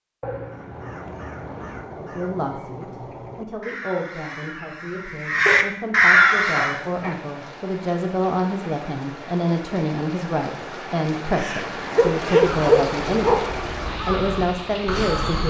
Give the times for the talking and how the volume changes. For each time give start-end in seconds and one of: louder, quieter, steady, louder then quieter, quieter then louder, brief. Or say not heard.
1.9-15.4 louder.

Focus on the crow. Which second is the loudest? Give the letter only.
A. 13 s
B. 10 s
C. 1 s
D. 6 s
D.